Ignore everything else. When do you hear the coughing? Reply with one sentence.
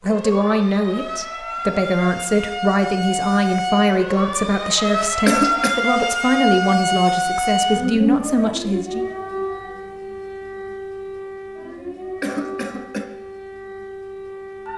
The coughing can be heard from 5.2 to 5.8 s and from 12.2 to 13.1 s.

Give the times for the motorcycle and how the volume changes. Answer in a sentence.
You can't hear the motorcycle here.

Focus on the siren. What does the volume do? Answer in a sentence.
The loudness of the siren goes up, then down.